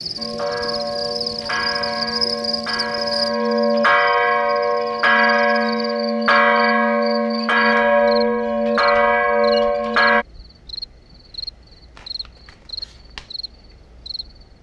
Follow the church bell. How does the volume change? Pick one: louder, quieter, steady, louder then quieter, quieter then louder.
louder.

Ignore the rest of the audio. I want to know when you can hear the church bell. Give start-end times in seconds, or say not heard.
0.1-10.2.